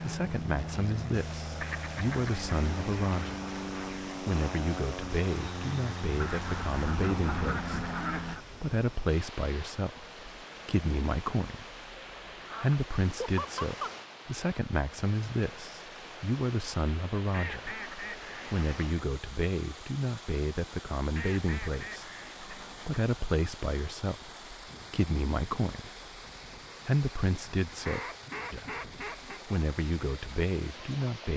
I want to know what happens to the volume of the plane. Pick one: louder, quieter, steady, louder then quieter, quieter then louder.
steady.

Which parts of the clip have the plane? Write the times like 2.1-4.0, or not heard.
0.0-8.4.